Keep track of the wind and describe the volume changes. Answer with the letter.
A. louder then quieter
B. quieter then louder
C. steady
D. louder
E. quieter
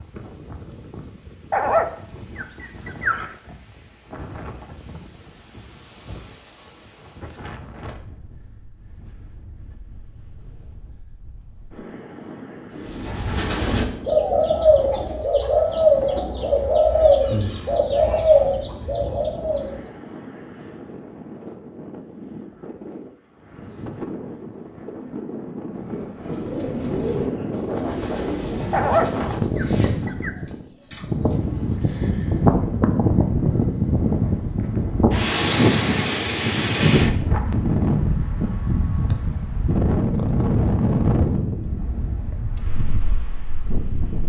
D.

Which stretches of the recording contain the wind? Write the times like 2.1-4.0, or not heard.
0.0-44.2.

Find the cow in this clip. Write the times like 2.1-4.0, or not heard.
not heard.